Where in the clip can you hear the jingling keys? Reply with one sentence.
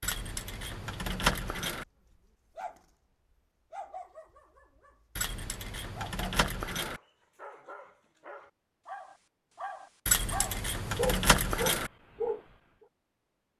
You can hear the jingling keys from 0.0 to 1.9 s, from 5.2 to 7.0 s and from 10.1 to 11.9 s.